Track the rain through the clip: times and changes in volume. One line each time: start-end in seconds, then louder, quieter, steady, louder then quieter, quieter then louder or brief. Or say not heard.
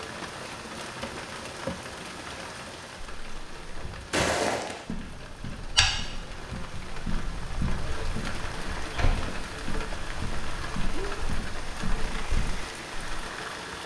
0.0-13.8 quieter then louder.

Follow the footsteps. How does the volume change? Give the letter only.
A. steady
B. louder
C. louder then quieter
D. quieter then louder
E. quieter
E.